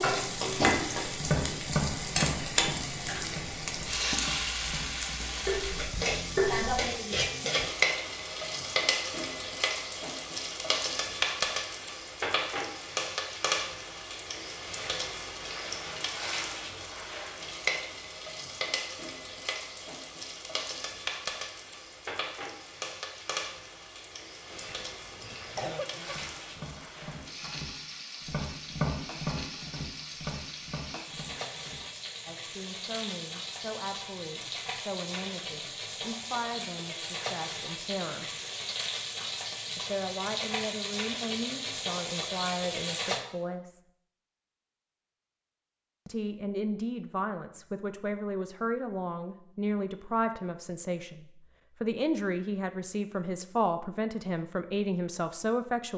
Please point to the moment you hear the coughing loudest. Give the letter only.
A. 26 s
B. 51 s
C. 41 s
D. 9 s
A.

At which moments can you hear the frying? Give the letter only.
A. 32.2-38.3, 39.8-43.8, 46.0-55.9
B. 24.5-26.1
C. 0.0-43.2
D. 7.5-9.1
C.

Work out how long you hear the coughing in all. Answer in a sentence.
The coughing can be heard for 2 seconds in total.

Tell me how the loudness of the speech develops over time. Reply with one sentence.
The volume of the speech goes up.